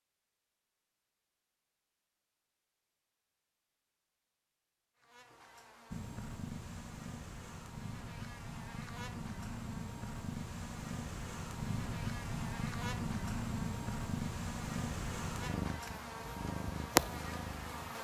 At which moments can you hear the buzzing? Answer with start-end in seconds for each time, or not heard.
5.0-17.9.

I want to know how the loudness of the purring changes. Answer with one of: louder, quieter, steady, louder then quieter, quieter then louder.
louder.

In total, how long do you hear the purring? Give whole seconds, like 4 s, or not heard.
12 s.